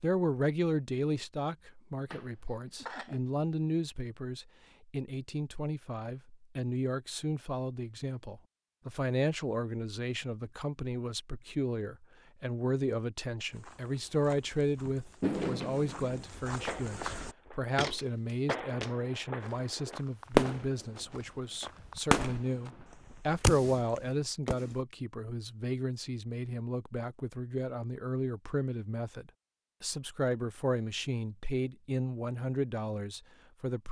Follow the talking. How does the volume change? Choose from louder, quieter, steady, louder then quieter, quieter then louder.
steady.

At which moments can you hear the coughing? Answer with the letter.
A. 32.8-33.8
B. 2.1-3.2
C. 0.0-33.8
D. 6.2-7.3
B.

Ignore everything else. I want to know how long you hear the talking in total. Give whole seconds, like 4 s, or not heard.
34 s.